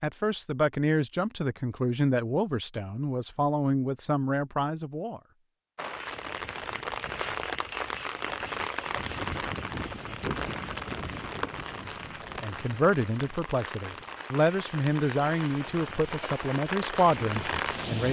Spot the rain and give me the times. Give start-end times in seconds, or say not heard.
5.8-18.0.